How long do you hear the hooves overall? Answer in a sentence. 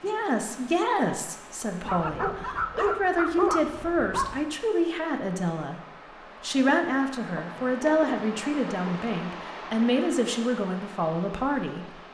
The hooves can't be heard in this clip.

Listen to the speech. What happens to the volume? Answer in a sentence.
The loudness of the speech stays about the same.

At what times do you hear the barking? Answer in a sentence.
The barking can be heard from 1.9 to 4.4 s and from 6.5 to 9.1 s.